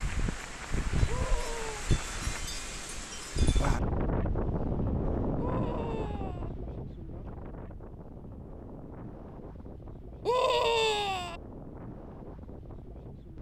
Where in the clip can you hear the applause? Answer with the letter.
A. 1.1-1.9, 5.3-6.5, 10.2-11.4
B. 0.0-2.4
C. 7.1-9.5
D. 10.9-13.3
B.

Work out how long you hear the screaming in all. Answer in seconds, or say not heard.
3 s.